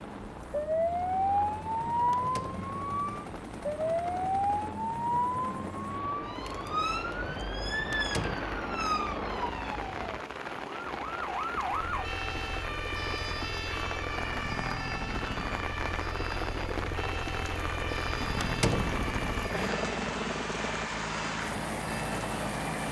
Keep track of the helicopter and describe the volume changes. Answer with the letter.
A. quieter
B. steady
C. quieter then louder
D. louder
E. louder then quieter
D.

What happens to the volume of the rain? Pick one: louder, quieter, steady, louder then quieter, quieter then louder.
louder.